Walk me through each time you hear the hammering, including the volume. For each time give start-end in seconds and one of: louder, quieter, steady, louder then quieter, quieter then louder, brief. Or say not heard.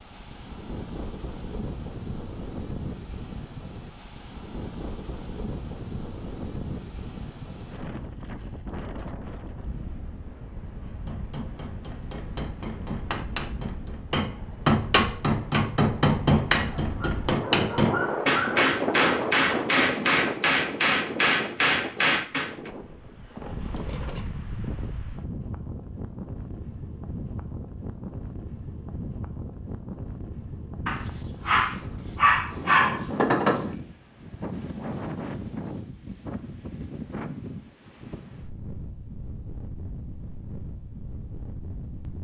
10.8-22.7 louder.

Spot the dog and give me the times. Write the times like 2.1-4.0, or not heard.
16.7-18.7, 30.9-33.7.